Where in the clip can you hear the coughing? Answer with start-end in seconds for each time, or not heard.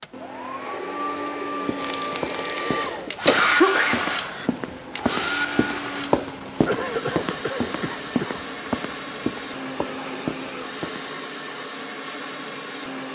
1.8-4.5, 6.7-8.4.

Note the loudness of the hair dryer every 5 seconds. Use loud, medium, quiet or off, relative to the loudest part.
loud, loud, medium.